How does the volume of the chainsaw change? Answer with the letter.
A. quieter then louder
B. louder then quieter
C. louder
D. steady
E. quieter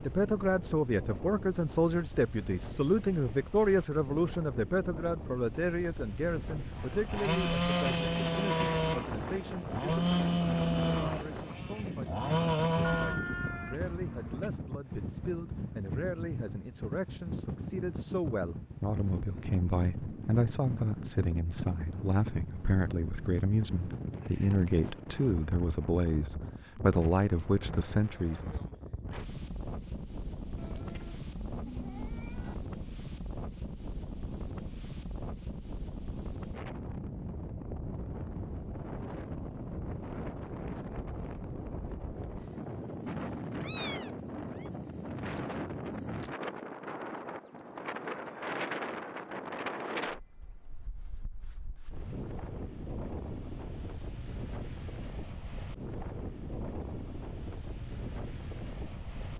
D.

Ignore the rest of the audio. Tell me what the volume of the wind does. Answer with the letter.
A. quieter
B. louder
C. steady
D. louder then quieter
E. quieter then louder
C.